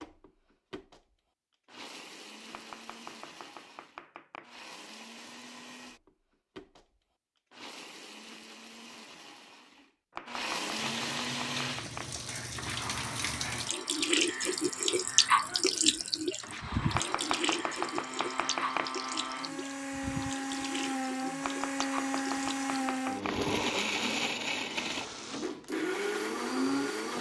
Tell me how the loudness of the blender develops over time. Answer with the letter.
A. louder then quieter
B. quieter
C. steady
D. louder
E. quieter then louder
D.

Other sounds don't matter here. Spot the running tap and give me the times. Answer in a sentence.
You can hear the running tap from 10.8 to 27.1 s.